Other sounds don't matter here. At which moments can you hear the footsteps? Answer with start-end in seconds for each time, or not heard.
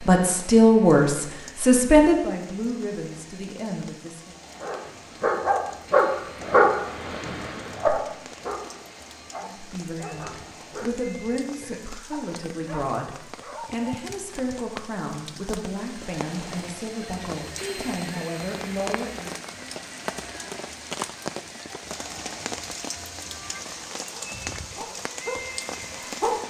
not heard.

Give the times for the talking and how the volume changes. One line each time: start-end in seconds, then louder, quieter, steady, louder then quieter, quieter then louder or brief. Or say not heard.
0.1-4.3 quieter
9.3-19.4 steady.